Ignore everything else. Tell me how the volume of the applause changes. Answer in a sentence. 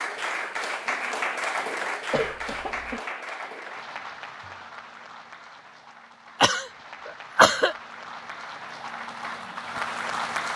The volume of the applause goes down, then up.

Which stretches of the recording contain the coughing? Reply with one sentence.
You can hear the coughing from 2.1 to 3.0 s and from 6.4 to 7.8 s.